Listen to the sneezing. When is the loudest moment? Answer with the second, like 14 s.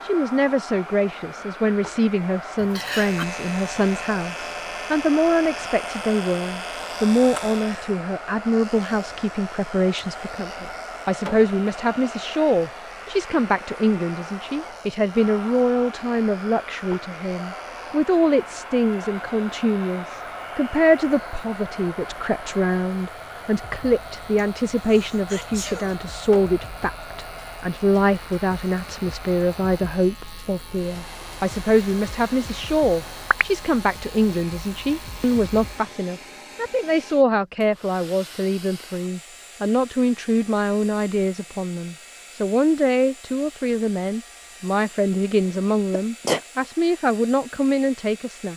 46 s.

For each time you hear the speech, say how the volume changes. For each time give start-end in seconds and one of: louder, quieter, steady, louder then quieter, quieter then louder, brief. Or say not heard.
0.1-48.5 steady.